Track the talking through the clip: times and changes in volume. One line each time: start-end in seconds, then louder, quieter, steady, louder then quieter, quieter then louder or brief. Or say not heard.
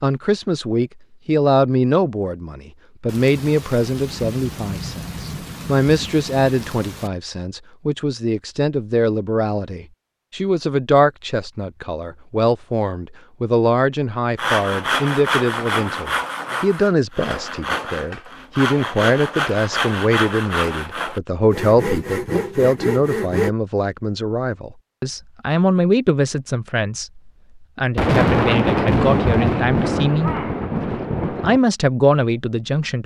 0.0-30.4 steady
31.3-33.0 brief.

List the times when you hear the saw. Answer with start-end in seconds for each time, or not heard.
14.3-23.5.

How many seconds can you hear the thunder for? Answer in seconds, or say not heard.
8 s.